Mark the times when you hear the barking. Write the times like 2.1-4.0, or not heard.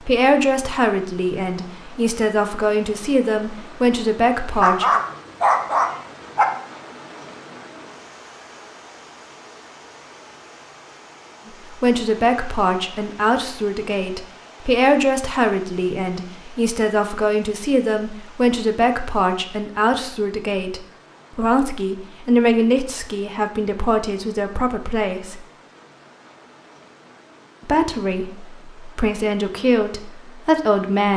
4.5-6.5.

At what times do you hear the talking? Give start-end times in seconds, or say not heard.
0.0-5.0, 11.4-25.4, 27.6-31.1.